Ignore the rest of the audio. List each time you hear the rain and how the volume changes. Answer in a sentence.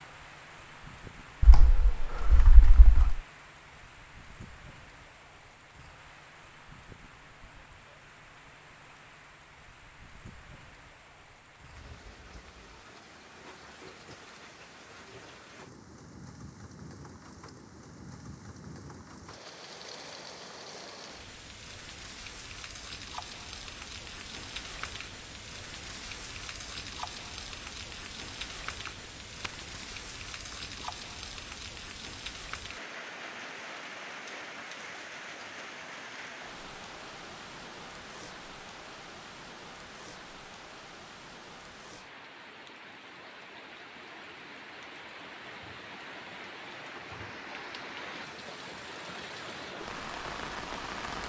The rain can be heard from 0.0 to 51.2 s, getting louder.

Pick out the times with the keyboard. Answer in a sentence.
The keyboard can be heard from 1.4 to 3.2 s and from 28.9 to 29.5 s.